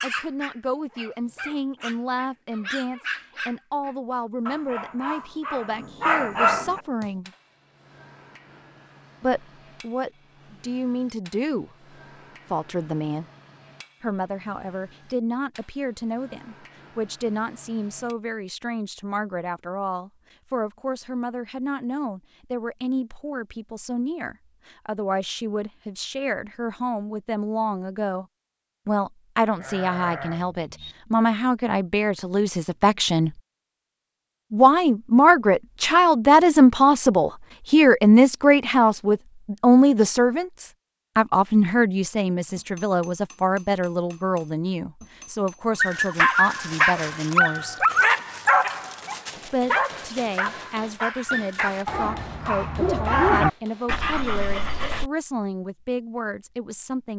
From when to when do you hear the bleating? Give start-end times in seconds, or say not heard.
29.6-30.9.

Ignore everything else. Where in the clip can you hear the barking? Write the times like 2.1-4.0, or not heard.
0.0-6.8, 45.8-55.1.